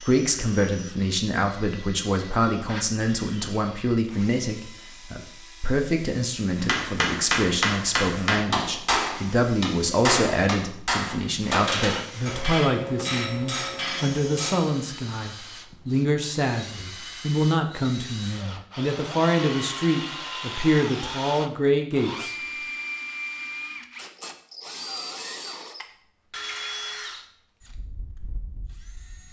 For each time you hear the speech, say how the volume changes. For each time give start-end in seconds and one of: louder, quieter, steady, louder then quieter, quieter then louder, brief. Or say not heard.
0.0-22.4 steady.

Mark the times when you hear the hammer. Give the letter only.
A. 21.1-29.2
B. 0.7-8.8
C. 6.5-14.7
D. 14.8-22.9
C.